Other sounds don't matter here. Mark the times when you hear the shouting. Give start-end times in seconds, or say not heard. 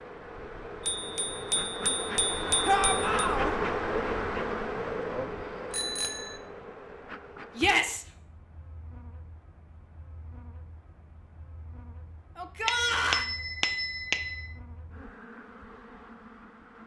2.6-3.5, 7.5-8.1, 12.3-13.2.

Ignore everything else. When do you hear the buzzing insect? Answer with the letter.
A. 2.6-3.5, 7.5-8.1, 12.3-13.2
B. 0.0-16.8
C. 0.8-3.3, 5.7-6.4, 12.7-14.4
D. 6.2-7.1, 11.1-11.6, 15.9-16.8
B.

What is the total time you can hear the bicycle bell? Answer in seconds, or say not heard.
5 s.